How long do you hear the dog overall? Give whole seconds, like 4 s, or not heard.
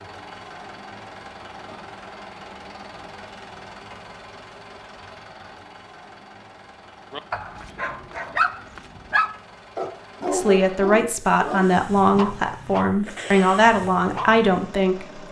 7 s.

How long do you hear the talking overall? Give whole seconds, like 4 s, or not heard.
5 s.